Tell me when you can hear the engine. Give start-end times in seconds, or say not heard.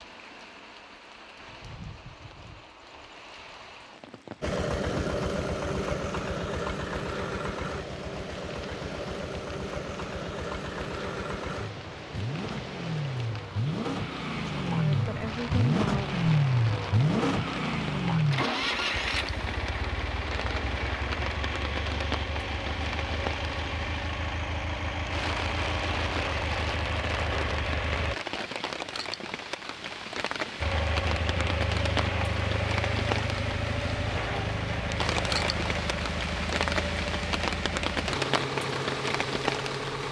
4.4-28.1, 30.6-40.0.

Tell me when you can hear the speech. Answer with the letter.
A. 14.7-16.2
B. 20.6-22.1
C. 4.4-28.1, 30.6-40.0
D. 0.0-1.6
A.